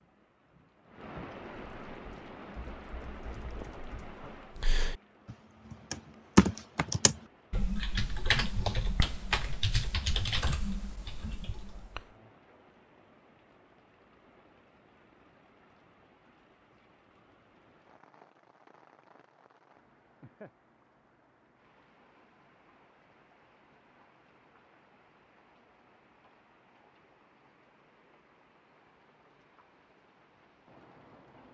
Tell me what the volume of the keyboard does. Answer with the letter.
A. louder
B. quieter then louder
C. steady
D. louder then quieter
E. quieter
D.